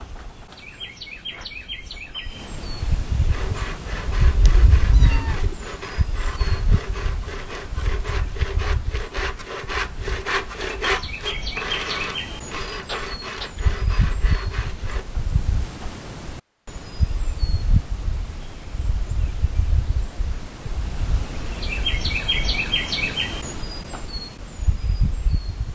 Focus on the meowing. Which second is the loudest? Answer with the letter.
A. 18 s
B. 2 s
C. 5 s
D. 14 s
C.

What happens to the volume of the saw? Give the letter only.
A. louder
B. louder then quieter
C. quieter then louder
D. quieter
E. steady
B.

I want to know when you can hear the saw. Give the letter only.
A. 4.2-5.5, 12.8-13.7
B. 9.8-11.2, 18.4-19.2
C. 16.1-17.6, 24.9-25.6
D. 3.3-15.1
D.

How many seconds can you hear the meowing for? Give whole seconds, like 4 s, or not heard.
2 s.